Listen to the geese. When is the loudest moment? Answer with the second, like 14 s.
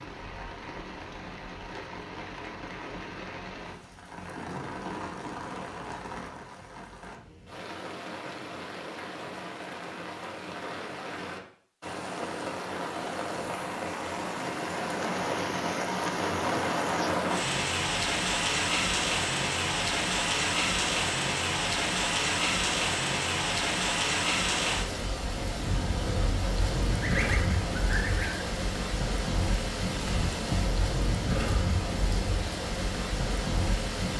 27 s.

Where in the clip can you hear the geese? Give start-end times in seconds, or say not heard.
26.9-28.5.